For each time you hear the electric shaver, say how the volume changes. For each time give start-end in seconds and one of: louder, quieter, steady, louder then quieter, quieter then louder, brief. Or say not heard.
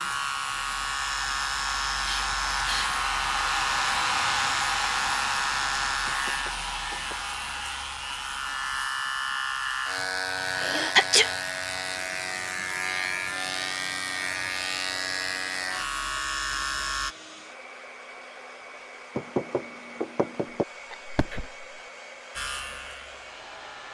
0.0-17.1 steady
22.4-23.8 brief.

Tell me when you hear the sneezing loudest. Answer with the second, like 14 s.
11 s.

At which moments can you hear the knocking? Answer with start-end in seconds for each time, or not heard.
6.0-7.2, 19.1-20.6.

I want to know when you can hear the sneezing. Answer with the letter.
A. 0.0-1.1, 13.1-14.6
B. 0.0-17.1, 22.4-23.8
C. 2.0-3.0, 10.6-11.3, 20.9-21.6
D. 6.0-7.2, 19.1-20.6
C.